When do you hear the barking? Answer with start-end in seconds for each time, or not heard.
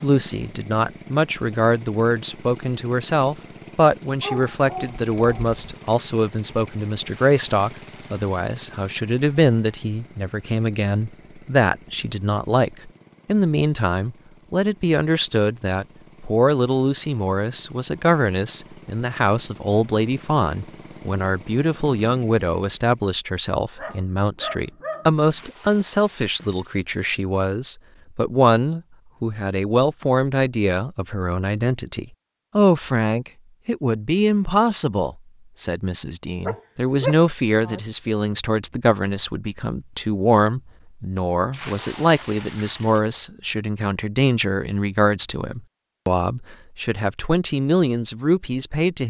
4.2-5.5, 23.8-25.5, 36.4-37.8.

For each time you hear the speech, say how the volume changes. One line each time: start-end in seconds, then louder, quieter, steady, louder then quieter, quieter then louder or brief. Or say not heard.
0.0-49.0 steady.